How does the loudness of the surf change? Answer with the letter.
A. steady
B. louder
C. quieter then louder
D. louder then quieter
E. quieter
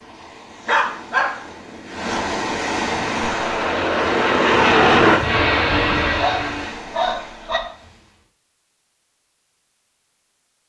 D.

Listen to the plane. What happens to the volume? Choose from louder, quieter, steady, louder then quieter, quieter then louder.
louder then quieter.